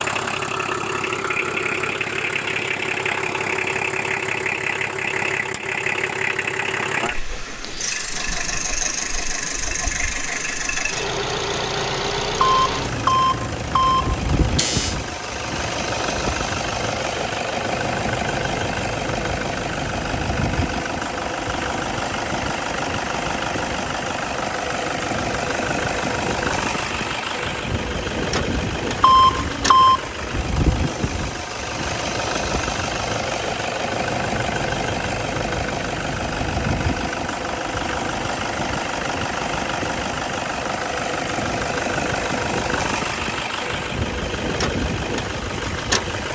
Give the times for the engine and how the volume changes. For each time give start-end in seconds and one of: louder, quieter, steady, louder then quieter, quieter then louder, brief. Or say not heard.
0.0-46.3 steady.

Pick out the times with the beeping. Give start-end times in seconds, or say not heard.
12.4-14.9, 29.0-30.1.